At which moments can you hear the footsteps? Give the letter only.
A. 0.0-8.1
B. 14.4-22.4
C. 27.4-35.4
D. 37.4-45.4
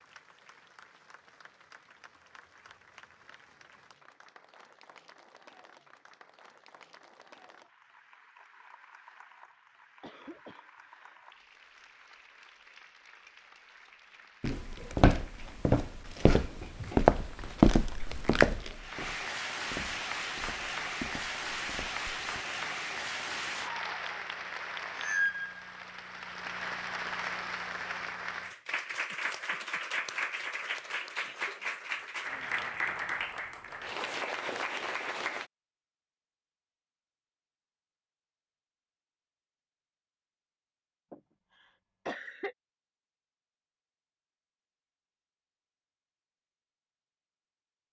B.